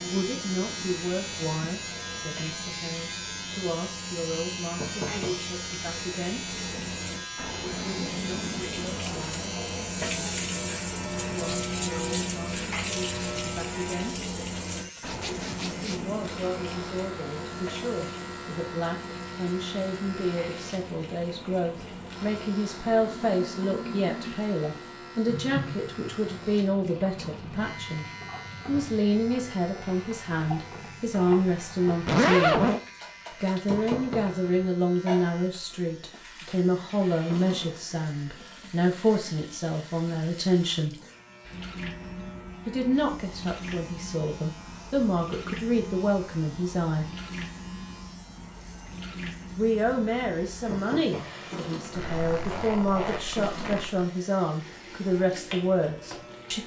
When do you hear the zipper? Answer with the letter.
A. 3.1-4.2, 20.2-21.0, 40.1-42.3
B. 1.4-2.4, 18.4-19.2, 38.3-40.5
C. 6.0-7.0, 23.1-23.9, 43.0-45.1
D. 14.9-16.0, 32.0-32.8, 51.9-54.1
D.